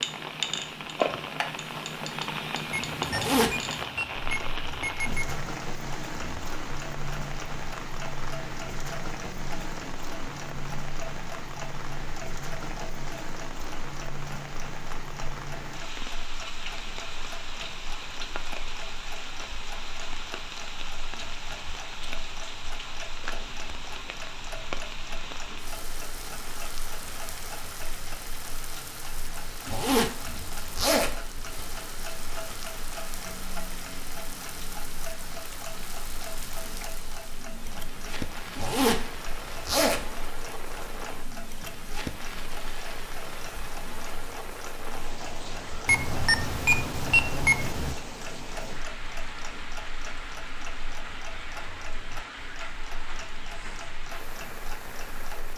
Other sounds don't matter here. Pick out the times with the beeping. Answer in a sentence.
The beeping can be heard from 2.7 to 5.4 s and from 45.9 to 48.0 s.